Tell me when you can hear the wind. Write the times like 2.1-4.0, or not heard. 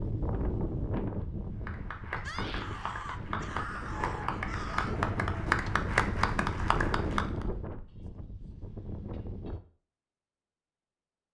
0.0-9.6.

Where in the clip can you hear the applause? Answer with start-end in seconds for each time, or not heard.
1.6-7.5.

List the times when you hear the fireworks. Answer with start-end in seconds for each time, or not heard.
not heard.